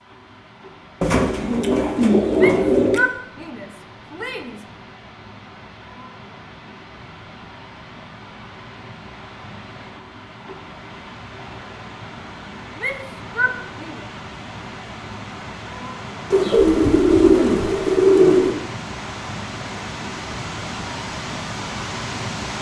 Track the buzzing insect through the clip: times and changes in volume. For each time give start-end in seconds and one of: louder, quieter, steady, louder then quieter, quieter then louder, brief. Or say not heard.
not heard.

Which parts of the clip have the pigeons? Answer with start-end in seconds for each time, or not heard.
1.0-3.0, 16.3-18.6.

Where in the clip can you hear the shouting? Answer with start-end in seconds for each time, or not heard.
2.4-4.7, 12.8-14.1.